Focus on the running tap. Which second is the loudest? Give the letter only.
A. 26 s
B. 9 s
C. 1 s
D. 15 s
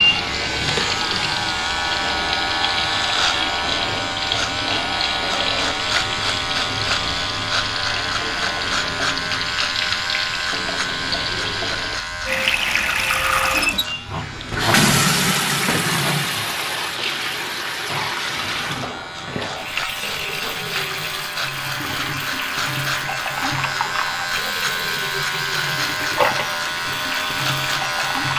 D.